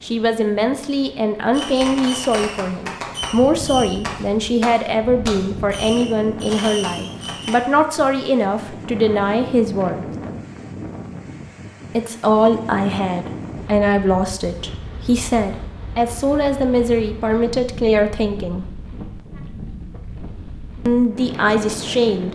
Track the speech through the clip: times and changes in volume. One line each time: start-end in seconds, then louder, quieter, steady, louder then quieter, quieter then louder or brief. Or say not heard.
0.0-10.1 steady
11.9-18.6 steady
20.9-22.2 brief.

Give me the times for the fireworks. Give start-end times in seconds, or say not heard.
1.5-7.5.